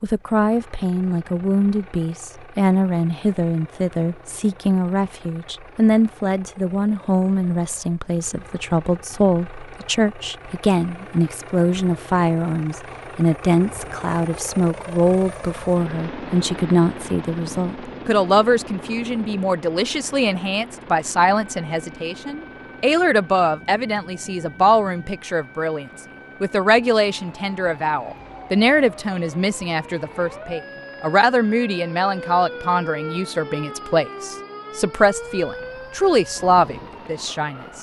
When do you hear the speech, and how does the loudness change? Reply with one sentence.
The speech can be heard from 0.0 to 37.7 s, at a steady volume.